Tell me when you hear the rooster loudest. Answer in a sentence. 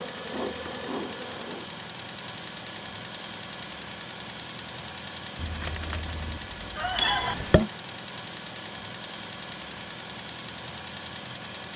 The loudest moment of the rooster is at 7 seconds.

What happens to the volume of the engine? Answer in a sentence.
The volume of the engine stays about the same.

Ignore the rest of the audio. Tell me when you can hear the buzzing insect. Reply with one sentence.
You can hear the buzzing insect from 0.0 to 1.7 s.